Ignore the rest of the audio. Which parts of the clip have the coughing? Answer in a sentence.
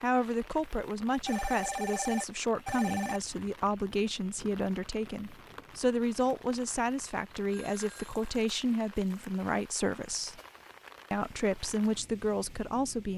The coughing can't be heard in this clip.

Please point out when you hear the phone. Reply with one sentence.
You can hear the phone from 1.2 to 3.2 s and from 7.5 to 9.2 s.